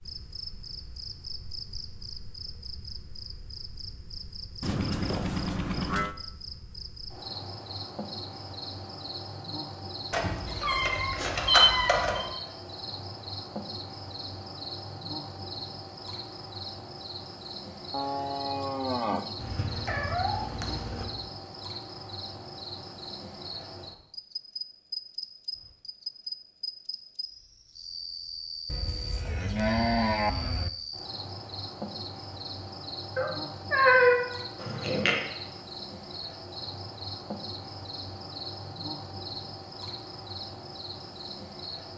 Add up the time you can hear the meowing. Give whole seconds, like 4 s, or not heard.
6 s.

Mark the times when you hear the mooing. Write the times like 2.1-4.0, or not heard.
4.6-6.2, 17.9-19.3, 28.6-30.7.